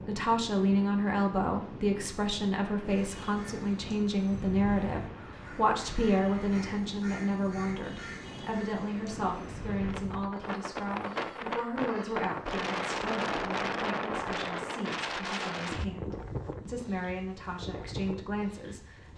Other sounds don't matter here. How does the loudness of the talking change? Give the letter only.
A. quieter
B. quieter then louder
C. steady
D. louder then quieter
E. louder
A.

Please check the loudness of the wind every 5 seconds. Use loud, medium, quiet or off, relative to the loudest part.
medium, medium, loud, medium.